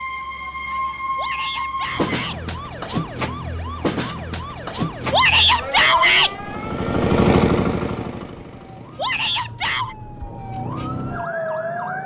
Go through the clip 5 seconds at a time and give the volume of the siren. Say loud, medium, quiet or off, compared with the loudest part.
loud, medium, loud.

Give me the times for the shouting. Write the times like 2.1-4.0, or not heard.
1.1-2.4, 5.1-6.3, 8.9-9.9.